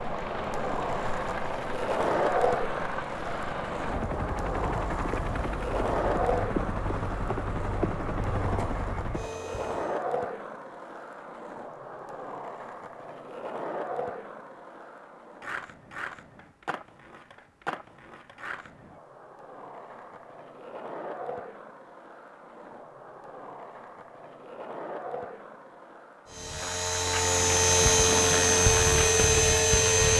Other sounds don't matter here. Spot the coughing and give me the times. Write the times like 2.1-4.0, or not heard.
not heard.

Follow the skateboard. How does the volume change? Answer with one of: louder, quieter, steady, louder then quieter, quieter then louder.
quieter.